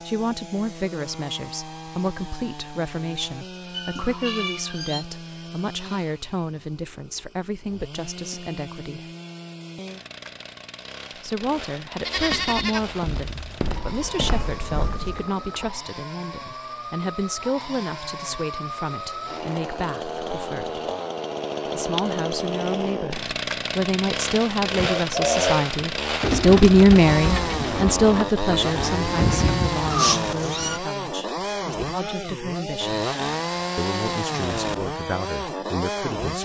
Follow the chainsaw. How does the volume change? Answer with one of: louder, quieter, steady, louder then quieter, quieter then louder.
louder.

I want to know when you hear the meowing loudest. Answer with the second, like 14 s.
30 s.